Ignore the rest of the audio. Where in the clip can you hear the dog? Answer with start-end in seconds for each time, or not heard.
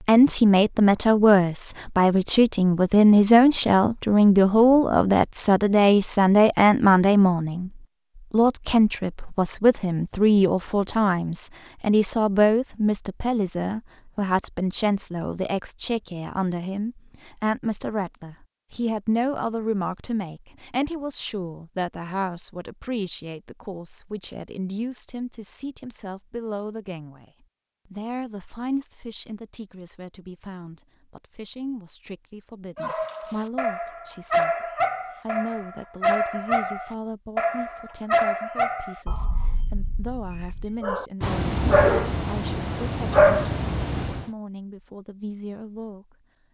32.8-44.2.